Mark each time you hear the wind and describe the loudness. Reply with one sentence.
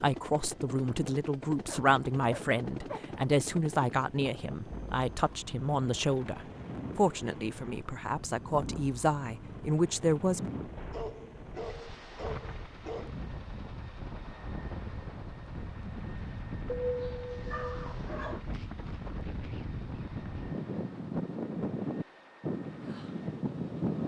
The wind can be heard from 0.2 to 24.0 s, getting louder.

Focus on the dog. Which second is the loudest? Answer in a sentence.
The volume of the dog peaks at 17 seconds.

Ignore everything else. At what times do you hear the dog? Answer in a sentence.
You can hear the dog from 1.6 to 3.0 s, from 10.9 to 13.2 s and from 16.6 to 18.4 s.